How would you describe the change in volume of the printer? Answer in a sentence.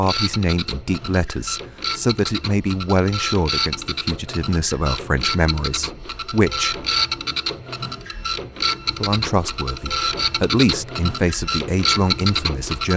The volume of the printer goes up.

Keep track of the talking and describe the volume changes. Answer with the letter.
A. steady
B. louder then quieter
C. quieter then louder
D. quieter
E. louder
A.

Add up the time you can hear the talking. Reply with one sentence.
The talking can be heard for 11 seconds in total.